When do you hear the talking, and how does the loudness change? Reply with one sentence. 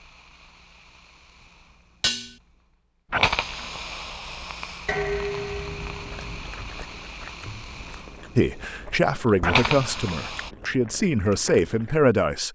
You can hear the talking from 8.3 to 12.4 s, getting quieter then louder.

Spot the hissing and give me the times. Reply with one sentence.
You can hear the hissing from 0.0 to 10.5 s.